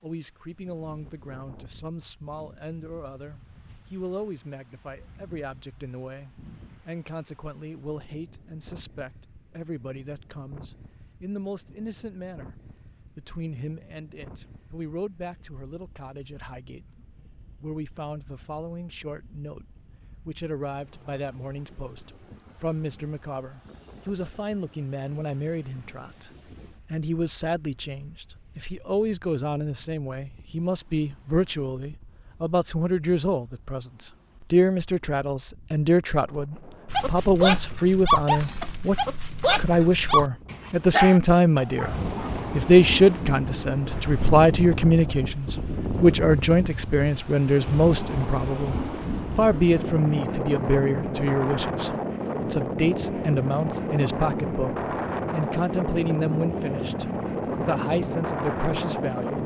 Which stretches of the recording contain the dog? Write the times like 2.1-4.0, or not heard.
36.9-42.3.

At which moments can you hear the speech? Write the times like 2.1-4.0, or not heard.
0.0-19.6, 20.2-26.3, 26.9-41.9, 42.5-59.4.